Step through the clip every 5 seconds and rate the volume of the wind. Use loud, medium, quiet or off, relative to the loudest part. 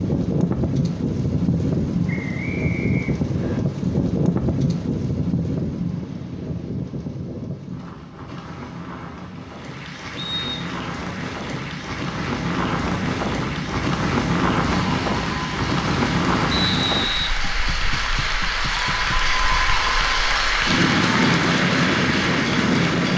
loud, medium, loud, loud, loud.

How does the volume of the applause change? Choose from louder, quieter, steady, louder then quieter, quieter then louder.
louder.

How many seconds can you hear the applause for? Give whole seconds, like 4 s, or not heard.
14 s.